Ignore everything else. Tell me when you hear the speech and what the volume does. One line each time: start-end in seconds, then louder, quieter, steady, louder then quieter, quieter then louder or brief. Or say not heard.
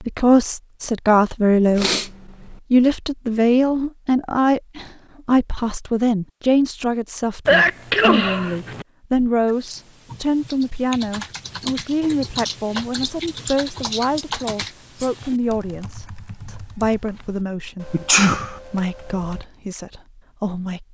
0.0-1.9 brief
2.7-20.8 quieter.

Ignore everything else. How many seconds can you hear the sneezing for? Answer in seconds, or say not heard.
3 s.